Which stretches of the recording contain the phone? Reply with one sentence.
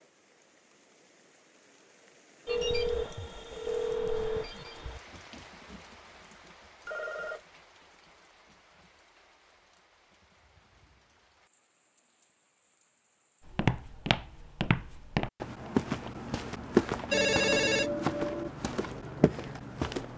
You can hear the phone from 2.5 to 5.0 s, from 6.8 to 7.5 s and from 17.1 to 18.5 s.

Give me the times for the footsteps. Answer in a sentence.
The footsteps can be heard from 13.4 to 20.1 s.